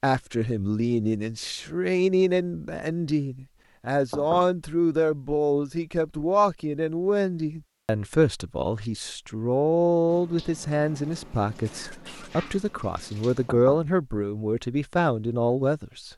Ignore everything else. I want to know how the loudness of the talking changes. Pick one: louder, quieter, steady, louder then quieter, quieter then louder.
steady.